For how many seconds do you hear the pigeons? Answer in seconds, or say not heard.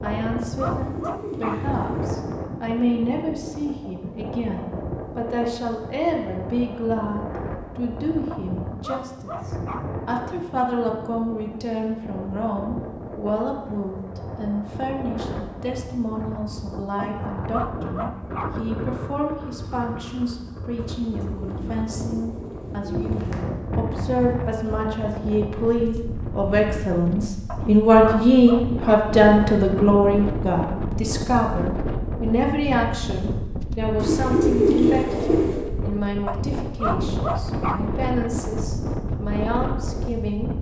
6 s.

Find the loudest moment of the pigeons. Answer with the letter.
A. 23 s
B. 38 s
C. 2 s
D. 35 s
D.